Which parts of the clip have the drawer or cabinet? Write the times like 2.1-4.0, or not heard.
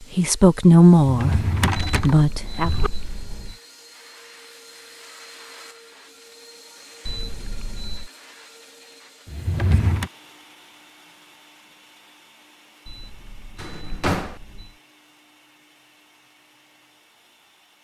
0.9-2.9, 9.2-10.1, 13.6-14.3.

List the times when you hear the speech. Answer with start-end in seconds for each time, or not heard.
0.1-2.7.